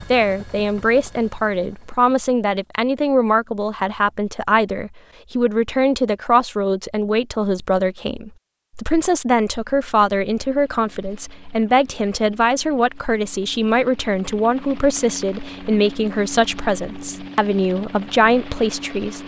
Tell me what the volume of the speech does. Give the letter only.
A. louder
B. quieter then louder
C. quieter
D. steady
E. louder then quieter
D.